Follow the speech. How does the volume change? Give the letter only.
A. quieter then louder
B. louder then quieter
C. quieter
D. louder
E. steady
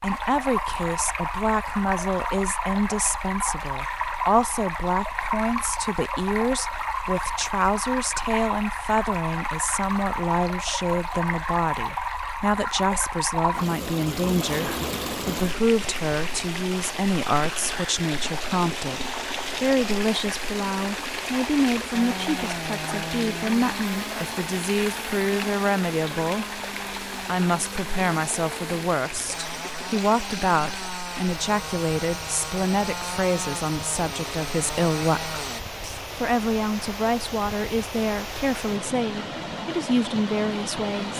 E.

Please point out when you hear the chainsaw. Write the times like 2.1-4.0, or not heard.
21.9-35.6.